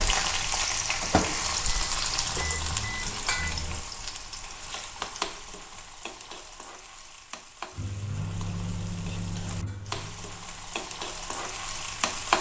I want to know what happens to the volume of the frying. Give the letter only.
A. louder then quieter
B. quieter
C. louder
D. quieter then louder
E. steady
D.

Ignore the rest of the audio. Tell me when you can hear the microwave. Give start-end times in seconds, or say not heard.
0.2-3.9, 7.7-12.3.